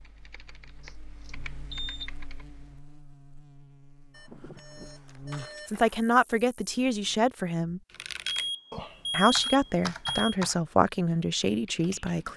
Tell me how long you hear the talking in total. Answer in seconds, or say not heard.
5 s.